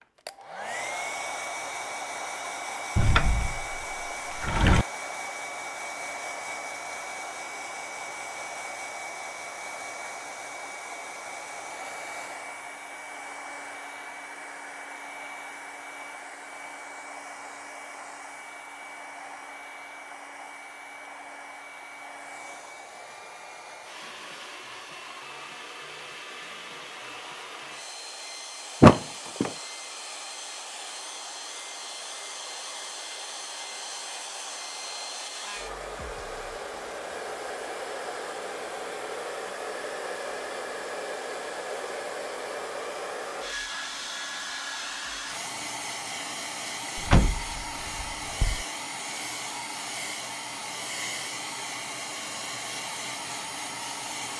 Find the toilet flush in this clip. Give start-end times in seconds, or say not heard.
not heard.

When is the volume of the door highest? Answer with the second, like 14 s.
29 s.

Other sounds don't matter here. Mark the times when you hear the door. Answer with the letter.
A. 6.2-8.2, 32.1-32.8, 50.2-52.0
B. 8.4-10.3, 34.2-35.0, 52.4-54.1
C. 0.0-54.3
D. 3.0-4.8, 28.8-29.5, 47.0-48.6
D.